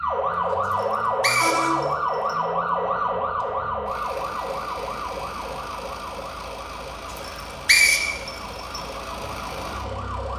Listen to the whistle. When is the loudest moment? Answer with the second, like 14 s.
8 s.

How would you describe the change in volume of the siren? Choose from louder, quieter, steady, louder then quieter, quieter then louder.
quieter.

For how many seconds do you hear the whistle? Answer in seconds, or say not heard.
3 s.